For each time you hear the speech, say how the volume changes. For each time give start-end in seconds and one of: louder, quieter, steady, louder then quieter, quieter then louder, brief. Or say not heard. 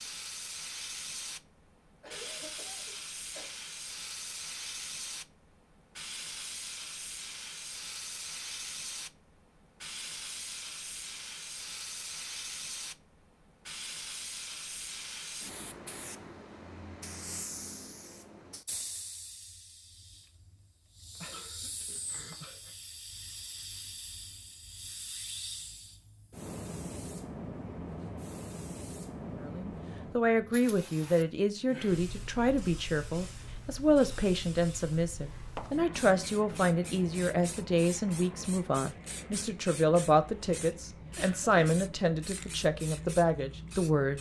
29.4-44.1 steady.